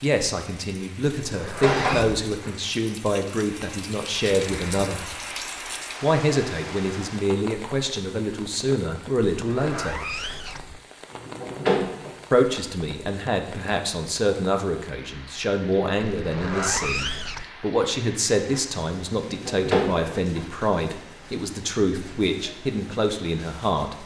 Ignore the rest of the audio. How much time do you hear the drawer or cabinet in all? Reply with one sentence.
The drawer or cabinet can be heard for 5 seconds in total.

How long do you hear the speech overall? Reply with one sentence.
The speech can be heard for 21 seconds in total.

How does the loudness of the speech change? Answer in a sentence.
The volume of the speech stays about the same.